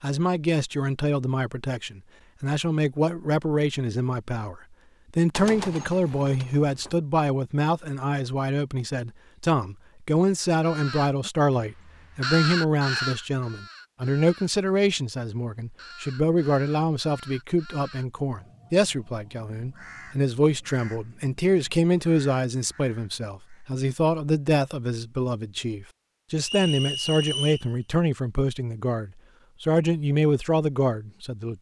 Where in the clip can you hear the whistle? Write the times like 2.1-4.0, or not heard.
26.4-27.6.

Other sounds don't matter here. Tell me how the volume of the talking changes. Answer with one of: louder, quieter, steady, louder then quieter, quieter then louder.
steady.